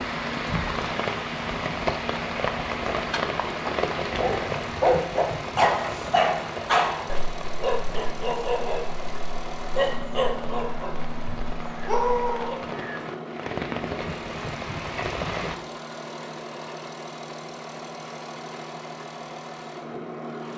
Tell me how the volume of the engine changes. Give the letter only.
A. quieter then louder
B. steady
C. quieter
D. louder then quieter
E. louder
B.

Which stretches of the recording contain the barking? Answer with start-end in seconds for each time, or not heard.
4.2-12.6.